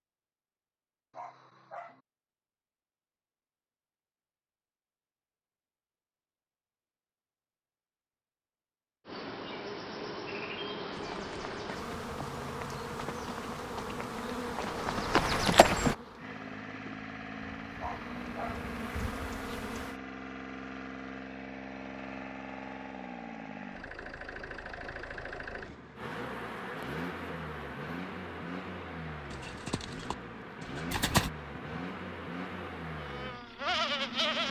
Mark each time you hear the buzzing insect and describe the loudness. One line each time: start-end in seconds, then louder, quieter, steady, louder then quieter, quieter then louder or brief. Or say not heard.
9.1-19.9 quieter then louder
25.9-34.4 quieter then louder.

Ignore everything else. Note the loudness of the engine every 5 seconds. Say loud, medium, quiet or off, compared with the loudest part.
off, off, off, loud, loud, loud, loud.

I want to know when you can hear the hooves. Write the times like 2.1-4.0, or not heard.
10.9-15.9, 29.3-31.3.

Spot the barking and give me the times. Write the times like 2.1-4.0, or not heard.
1.1-2.0, 17.8-18.7.